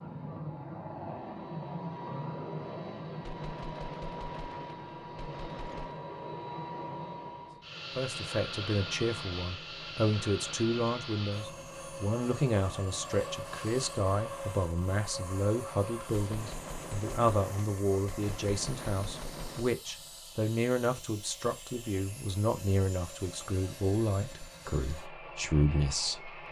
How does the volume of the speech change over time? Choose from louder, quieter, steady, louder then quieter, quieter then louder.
steady.